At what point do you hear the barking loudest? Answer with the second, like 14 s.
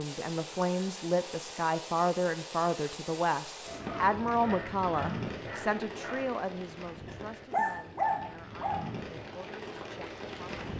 8 s.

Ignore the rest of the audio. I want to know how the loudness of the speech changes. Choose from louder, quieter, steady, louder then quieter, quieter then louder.
quieter.